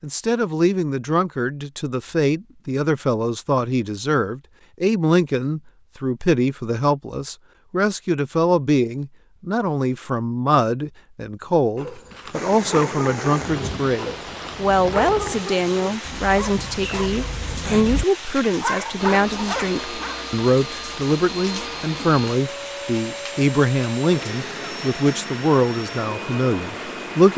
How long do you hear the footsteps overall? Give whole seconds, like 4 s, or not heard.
not heard.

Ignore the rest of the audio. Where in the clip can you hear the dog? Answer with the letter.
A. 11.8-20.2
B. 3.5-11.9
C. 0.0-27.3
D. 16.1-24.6
A.